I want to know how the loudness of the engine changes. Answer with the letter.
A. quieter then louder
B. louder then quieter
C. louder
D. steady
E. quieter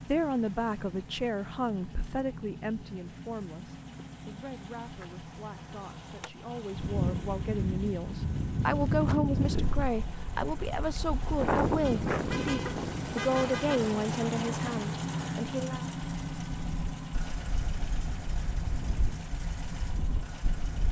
B.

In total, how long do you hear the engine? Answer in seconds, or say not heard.
21 s.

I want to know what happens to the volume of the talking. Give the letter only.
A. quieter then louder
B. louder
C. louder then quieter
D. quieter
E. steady
A.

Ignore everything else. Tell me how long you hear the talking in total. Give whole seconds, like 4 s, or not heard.
16 s.